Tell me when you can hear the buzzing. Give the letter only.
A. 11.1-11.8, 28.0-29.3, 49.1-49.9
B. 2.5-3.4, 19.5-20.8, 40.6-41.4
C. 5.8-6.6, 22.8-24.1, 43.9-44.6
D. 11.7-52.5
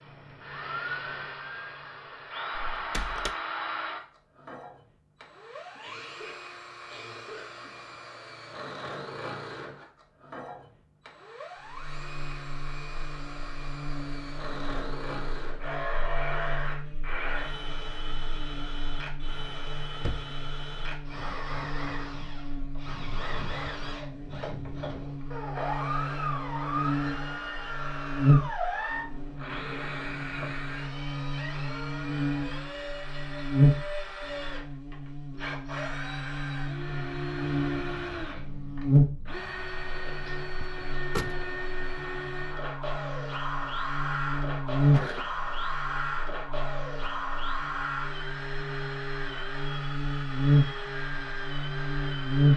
D.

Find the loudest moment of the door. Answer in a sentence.
The volume of the door peaks at 41 seconds.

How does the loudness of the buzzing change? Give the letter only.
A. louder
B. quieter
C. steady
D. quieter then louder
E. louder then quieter
A.